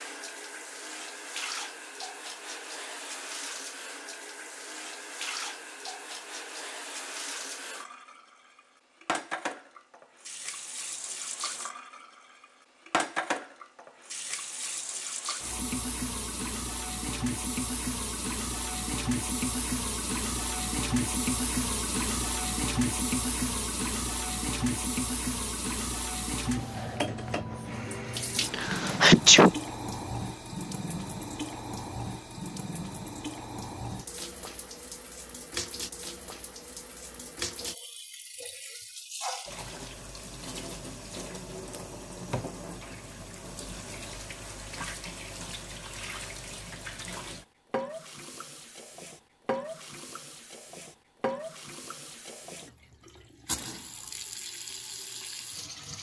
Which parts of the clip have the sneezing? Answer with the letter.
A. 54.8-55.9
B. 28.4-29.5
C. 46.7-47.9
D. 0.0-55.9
B.